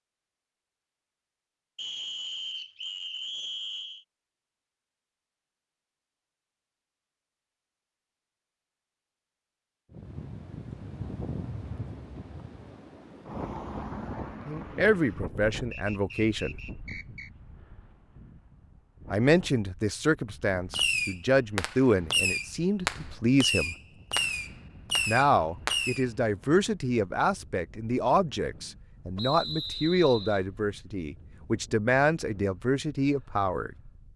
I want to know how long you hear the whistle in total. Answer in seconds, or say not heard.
5 s.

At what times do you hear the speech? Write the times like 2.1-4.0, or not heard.
14.4-16.6, 19.1-23.8, 25.1-33.8.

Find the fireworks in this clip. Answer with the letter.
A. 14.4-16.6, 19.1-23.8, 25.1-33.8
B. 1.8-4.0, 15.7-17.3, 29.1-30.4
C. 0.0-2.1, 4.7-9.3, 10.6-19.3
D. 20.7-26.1
D.